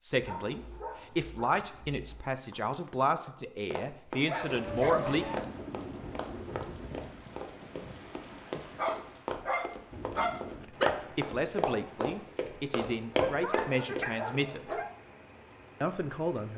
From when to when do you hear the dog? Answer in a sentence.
The dog can be heard from 0.2 to 2.4 s, from 4.2 to 5.5 s, from 8.8 to 10.9 s and from 13.2 to 14.9 s.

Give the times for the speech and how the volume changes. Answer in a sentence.
The speech can be heard from 0.0 to 5.2 s, at a steady volume; from 10.7 to 14.8 s, at a steady volume; and briefly from 15.8 to 16.5 s.